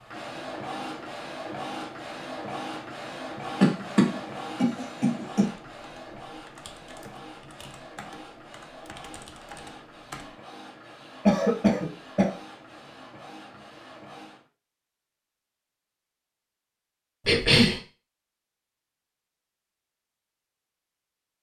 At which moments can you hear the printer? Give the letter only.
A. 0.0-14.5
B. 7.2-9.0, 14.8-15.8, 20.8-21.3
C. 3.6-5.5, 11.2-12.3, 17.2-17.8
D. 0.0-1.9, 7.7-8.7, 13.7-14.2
A.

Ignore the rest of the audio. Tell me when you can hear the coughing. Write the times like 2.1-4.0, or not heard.
3.6-5.5, 11.2-12.3, 17.2-17.8.